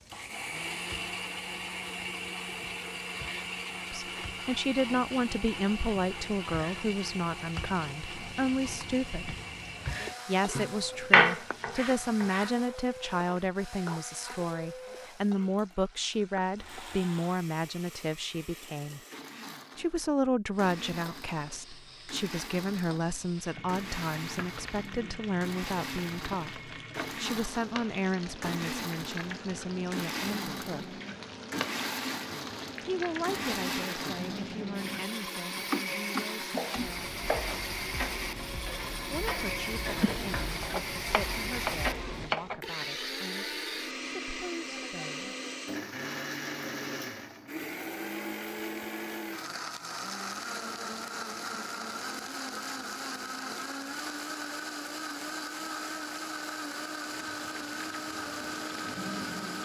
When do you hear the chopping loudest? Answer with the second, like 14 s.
11 s.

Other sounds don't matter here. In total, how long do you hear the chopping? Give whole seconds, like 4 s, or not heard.
6 s.